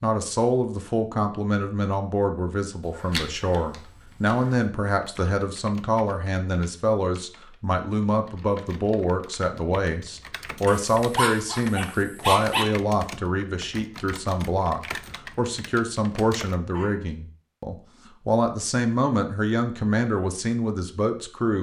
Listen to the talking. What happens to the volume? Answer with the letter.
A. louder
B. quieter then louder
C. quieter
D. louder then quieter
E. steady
E.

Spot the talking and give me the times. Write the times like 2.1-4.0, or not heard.
0.0-21.5.